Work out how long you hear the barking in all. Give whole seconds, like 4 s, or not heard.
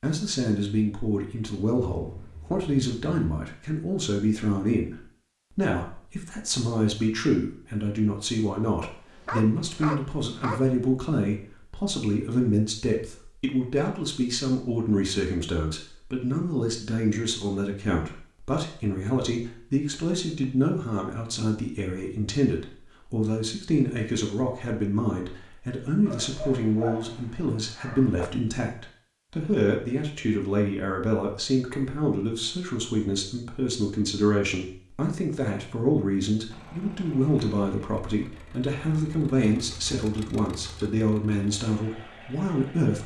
4 s.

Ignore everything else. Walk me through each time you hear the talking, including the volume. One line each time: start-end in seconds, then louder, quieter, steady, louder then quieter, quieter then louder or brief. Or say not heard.
0.0-43.0 steady.